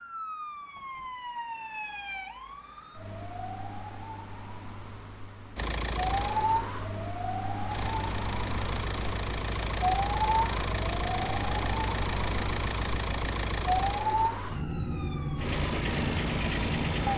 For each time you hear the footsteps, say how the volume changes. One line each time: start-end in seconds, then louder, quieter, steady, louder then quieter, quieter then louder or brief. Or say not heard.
not heard.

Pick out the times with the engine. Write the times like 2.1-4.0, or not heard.
5.5-17.1.